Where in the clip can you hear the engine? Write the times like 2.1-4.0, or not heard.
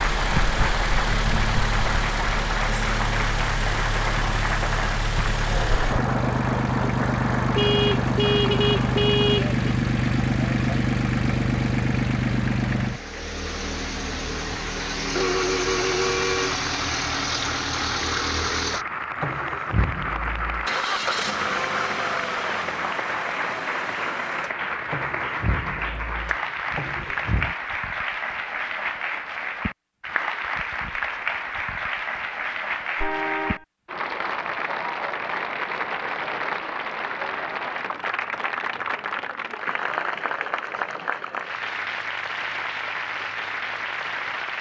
0.0-27.6.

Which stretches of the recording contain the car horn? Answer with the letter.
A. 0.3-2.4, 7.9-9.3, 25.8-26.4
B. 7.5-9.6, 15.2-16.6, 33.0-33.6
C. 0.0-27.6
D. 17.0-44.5
B.